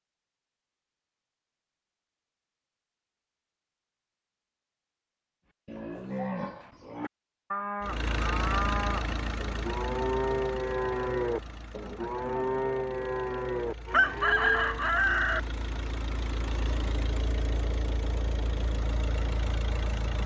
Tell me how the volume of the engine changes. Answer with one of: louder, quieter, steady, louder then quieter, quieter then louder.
quieter then louder.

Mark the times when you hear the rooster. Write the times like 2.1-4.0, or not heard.
13.9-15.4.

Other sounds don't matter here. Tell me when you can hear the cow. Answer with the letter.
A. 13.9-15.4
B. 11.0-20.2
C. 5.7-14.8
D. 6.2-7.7
C.